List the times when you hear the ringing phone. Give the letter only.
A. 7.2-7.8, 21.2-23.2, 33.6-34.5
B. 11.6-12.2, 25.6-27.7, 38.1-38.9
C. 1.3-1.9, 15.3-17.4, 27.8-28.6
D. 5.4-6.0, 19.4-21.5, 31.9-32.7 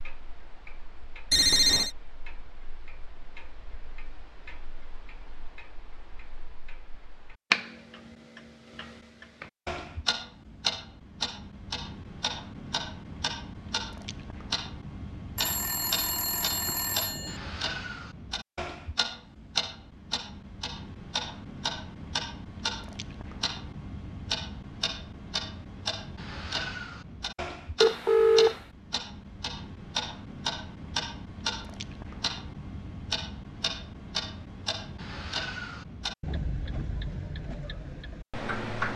C.